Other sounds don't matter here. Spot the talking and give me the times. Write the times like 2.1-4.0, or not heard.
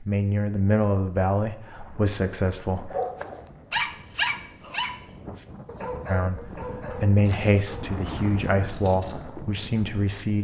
0.0-3.0, 6.0-10.4.